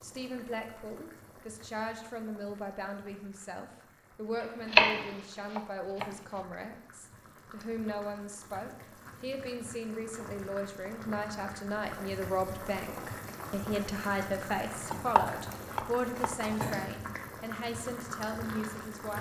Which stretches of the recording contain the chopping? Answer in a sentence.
You can hear the chopping from 4.7 to 6.1 s and from 14.9 to 16.7 s.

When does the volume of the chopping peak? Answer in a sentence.
The volume of the chopping peaks at 5 seconds.